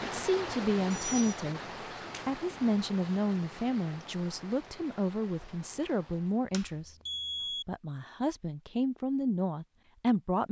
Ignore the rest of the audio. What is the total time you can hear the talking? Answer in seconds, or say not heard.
9 s.